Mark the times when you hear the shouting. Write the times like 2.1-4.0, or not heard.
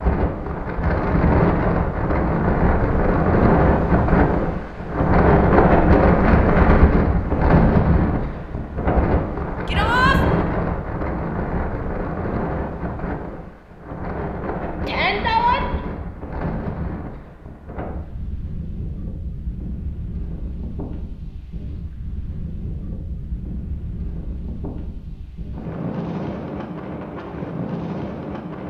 9.7-10.2, 14.8-15.7.